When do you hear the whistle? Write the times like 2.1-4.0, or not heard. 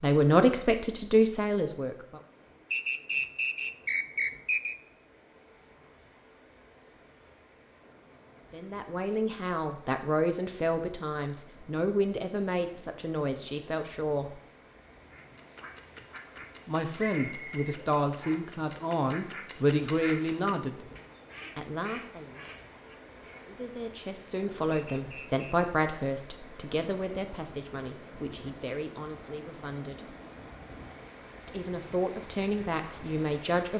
2.7-4.8, 16.9-18.5, 24.7-25.7.